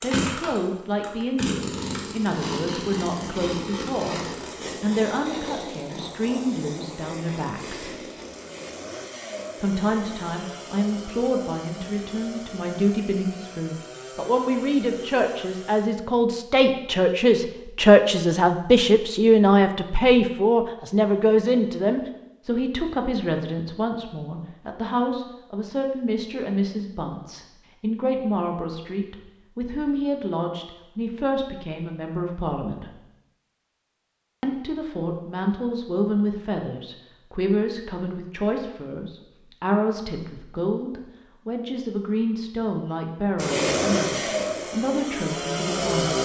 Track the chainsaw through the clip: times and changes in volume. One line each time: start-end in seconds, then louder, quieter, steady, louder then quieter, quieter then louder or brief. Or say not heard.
0.0-15.8 quieter
43.4-46.2 brief.